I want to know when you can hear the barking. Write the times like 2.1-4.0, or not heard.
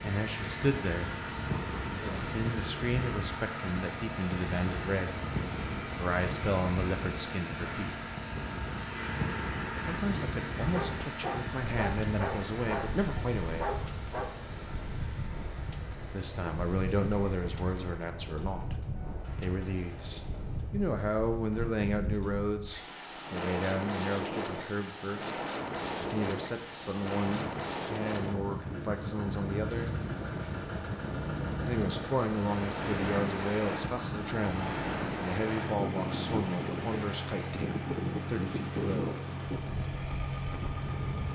10.7-14.3.